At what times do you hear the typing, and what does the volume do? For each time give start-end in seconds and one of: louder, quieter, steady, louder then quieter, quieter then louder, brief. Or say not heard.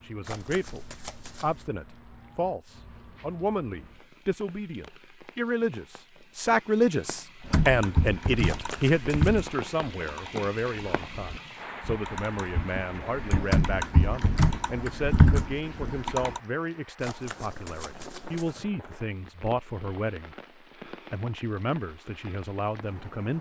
7.5-16.4 quieter then louder.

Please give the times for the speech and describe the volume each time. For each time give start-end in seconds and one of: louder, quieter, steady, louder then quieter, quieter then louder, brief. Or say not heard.
0.0-23.3 louder then quieter.